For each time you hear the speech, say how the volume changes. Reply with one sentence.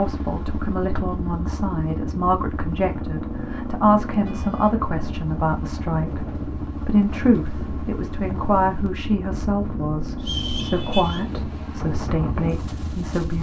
You can hear the speech from 0.0 to 13.3 s, at a steady volume.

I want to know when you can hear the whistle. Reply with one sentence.
The whistle can be heard from 10.2 to 11.2 s.